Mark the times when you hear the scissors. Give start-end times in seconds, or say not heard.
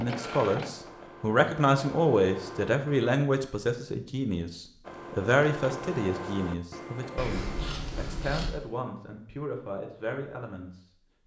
7.2-8.5.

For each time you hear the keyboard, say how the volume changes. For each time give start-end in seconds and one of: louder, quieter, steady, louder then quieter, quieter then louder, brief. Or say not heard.
not heard.